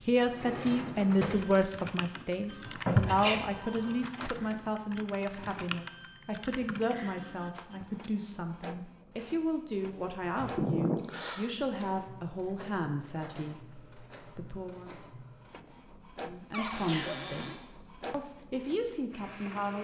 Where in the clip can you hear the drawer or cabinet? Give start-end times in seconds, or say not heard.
0.2-1.6, 9.1-10.7, 16.5-17.6.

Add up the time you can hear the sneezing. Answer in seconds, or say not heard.
3 s.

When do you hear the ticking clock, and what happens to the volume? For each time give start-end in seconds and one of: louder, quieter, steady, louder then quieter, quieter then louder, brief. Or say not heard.
not heard.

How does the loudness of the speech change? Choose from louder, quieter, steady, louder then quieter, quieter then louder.
quieter.